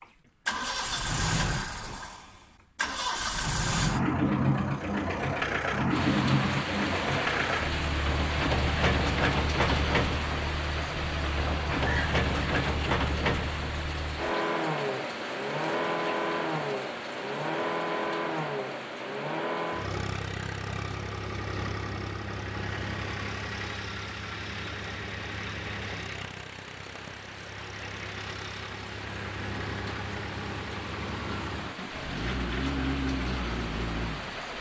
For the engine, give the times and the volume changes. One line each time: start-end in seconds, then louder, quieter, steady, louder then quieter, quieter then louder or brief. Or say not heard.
0.0-34.5 quieter.